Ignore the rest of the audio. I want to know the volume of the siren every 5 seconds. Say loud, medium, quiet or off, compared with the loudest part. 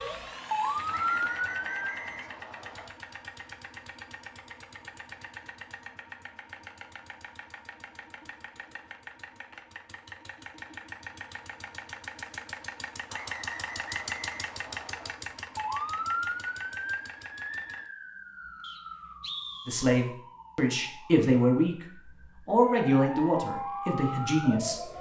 loud, off, off, medium, medium.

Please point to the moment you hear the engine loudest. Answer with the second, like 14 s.
14 s.